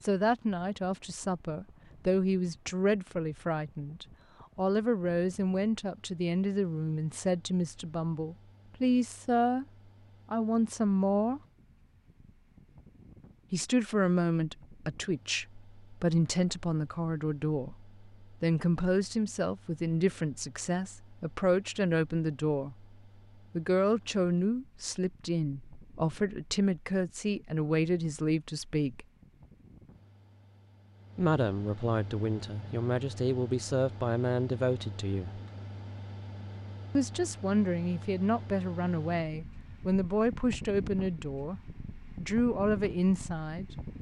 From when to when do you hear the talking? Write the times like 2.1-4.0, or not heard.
0.0-9.7, 10.3-11.4, 13.5-22.9, 23.6-29.1, 31.1-35.4, 37.0-43.6.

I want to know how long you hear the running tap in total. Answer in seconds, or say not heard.
not heard.